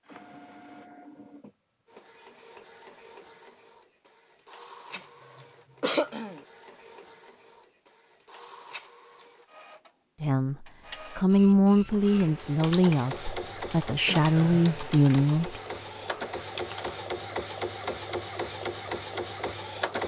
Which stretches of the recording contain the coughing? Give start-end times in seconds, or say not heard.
5.8-6.4, 14.1-14.8.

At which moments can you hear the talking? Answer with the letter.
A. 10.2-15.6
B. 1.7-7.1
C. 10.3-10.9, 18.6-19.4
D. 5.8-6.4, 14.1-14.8
A.